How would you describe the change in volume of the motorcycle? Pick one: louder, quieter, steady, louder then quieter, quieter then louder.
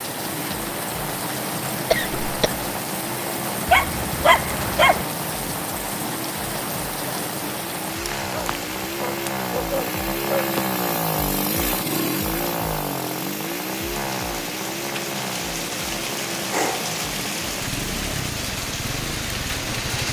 louder then quieter.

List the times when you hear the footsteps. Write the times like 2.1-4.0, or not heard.
not heard.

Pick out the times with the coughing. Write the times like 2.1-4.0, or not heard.
1.9-2.5.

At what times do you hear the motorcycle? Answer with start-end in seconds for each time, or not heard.
0.0-20.0.